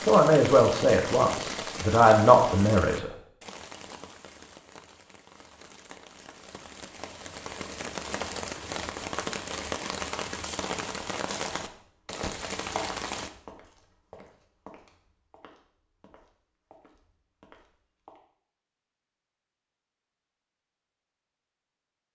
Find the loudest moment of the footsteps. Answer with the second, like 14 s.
13 s.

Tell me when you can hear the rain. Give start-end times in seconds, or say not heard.
0.0-13.3.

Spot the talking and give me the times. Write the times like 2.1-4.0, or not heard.
0.0-3.1.